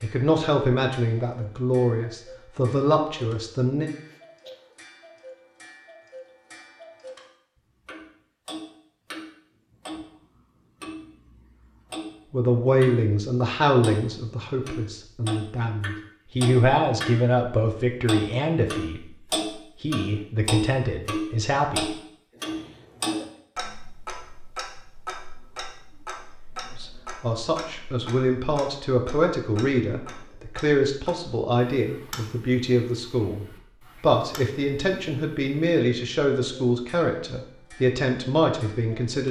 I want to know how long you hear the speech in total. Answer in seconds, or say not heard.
26 s.